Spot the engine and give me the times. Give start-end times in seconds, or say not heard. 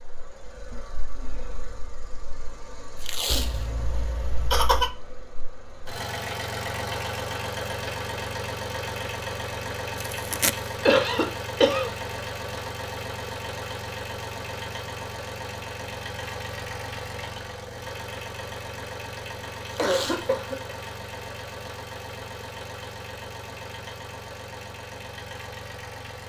0.0-26.2.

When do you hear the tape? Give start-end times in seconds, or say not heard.
3.0-3.6, 10.1-10.6, 19.7-20.4.